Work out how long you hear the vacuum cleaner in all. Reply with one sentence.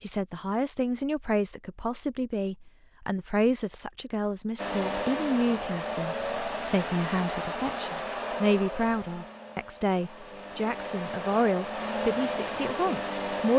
The vacuum cleaner can be heard for 9 seconds in total.